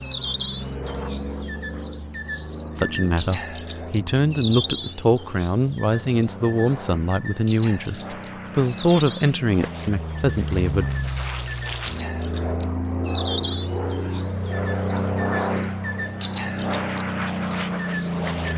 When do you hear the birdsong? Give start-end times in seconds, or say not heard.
0.0-18.5.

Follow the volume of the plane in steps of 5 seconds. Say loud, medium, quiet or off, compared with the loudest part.
medium, medium, loud, loud.